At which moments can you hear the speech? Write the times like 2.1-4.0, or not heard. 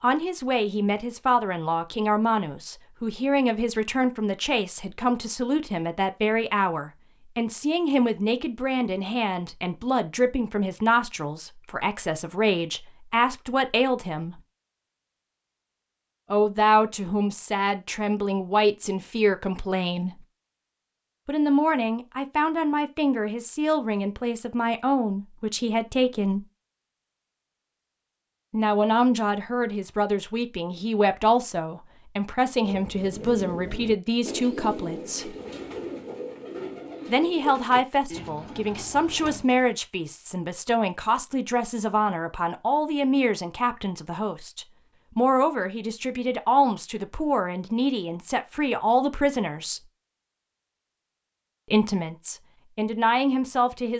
0.0-14.4, 16.3-20.2, 21.2-26.4, 28.5-35.4, 37.0-49.8, 51.6-53.9.